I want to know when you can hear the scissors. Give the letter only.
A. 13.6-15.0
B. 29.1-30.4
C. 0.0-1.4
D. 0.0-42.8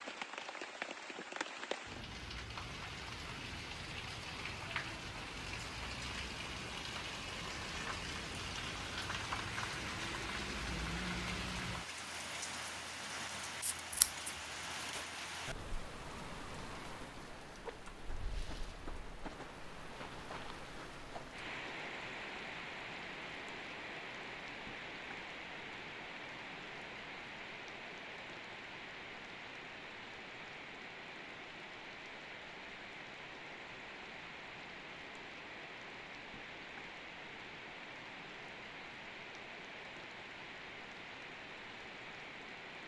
A.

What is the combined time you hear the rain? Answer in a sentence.
You can hear the rain for 43 seconds altogether.